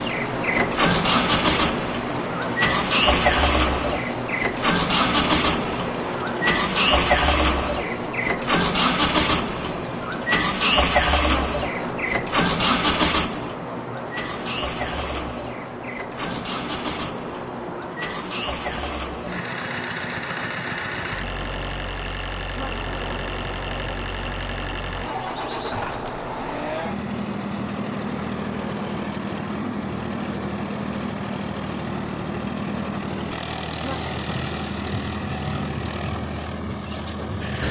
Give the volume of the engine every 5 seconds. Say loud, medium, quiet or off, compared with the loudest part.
loud, loud, loud, medium, medium, medium, medium, medium.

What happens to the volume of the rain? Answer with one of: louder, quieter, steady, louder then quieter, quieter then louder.
quieter.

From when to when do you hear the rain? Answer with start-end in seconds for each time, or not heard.
0.0-37.6.